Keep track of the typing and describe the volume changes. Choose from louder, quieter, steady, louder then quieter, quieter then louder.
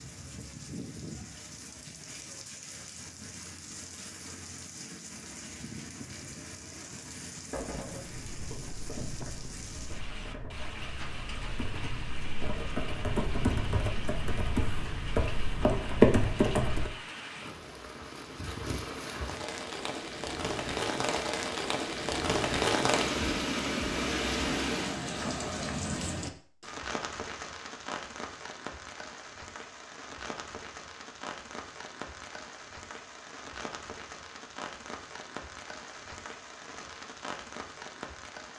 louder.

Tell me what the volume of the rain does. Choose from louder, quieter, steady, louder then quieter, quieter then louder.
louder then quieter.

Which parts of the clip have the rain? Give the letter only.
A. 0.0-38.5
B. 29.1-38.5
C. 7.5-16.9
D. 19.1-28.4
A.